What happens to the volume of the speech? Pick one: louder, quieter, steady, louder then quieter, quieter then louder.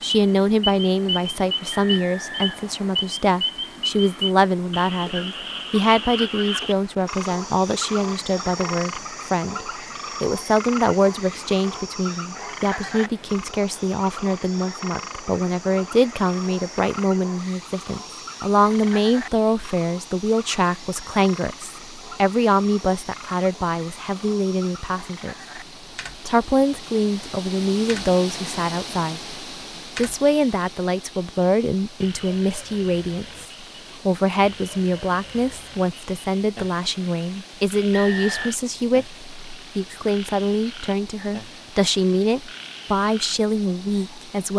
steady.